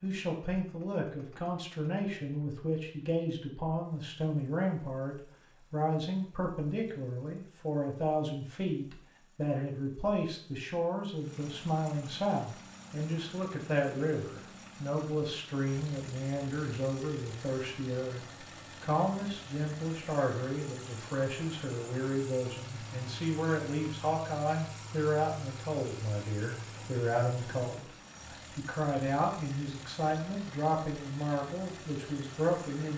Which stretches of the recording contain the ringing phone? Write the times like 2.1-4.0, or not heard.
not heard.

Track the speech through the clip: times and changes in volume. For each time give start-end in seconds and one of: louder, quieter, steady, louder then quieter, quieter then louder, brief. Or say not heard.
0.0-32.9 steady.